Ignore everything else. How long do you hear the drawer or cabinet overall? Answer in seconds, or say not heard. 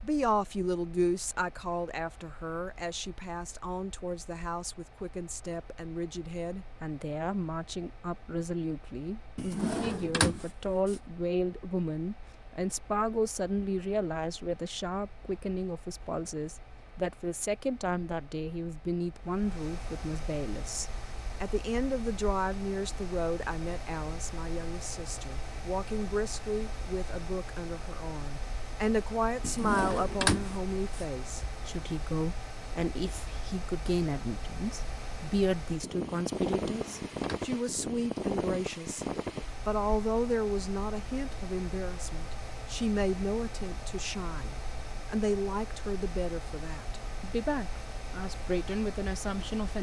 4 s.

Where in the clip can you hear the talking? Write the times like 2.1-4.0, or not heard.
0.0-39.0, 39.6-49.7.